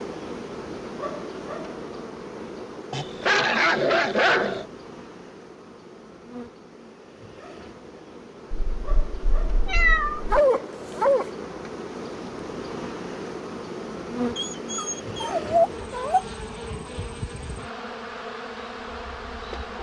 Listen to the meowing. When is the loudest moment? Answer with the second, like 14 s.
10 s.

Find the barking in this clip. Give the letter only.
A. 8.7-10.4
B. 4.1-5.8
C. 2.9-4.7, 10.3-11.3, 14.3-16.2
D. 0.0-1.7
C.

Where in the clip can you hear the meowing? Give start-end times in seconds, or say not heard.
8.7-10.4.